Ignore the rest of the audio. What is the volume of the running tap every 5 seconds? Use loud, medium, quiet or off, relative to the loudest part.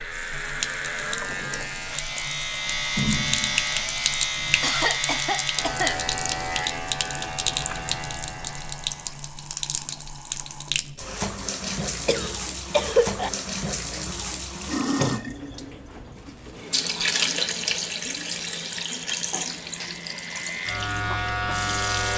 loud, loud, loud, loud, medium.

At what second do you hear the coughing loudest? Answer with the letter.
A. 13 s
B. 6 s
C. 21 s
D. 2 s
A.